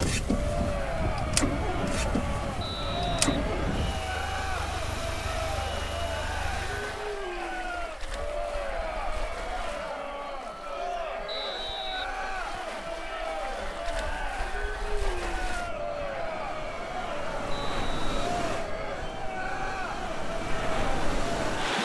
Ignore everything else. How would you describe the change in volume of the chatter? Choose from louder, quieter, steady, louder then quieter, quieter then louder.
steady.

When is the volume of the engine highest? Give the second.
2 s.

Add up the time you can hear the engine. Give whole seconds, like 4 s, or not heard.
7 s.